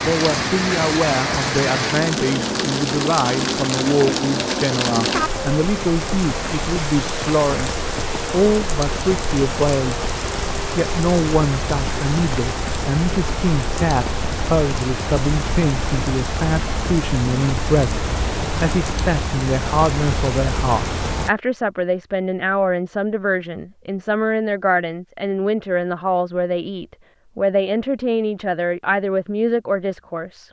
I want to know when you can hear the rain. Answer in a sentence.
You can hear the rain from 0.0 to 21.3 s.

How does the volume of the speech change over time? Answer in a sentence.
The loudness of the speech stays about the same.